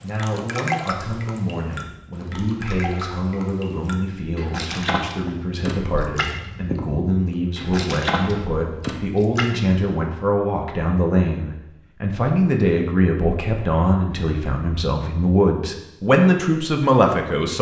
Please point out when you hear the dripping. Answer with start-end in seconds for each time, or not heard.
0.0-9.6.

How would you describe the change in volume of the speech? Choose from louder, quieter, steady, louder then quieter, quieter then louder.
louder.